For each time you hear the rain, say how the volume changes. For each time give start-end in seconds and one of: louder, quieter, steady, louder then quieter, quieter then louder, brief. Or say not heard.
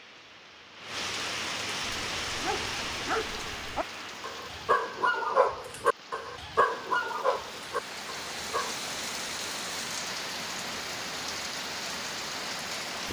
0.0-13.0 quieter then louder.